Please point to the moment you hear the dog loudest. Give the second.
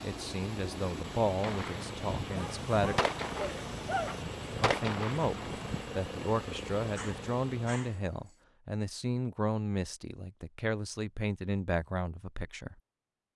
4 s.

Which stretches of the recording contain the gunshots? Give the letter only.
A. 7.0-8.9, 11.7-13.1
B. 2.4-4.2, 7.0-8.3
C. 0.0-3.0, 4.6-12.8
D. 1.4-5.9
D.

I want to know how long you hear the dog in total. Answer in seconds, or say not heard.
3 s.